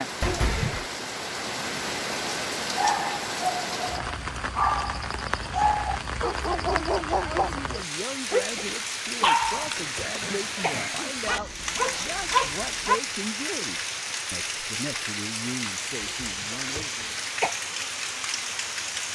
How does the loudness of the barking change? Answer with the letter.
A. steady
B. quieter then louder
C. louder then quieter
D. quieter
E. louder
A.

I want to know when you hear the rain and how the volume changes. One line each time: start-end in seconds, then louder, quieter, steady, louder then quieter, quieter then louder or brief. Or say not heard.
0.0-19.1 steady.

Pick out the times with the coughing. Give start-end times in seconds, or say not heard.
0.2-0.8, 9.2-11.2, 16.0-17.6.